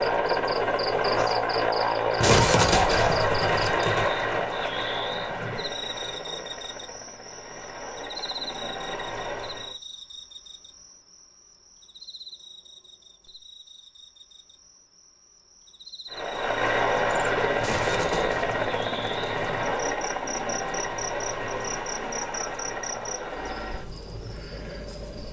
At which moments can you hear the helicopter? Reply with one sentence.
You can hear the helicopter from 0.0 to 9.8 s and from 16.1 to 25.2 s.